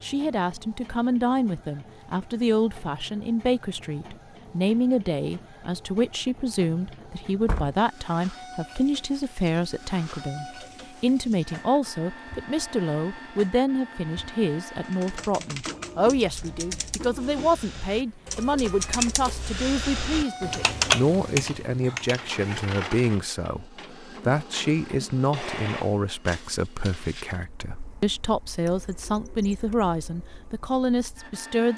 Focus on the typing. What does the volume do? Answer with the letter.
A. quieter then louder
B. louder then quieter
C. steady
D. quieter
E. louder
E.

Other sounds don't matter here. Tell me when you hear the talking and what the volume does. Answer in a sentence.
The talking can be heard from 0.0 to 31.7 s, at a steady volume.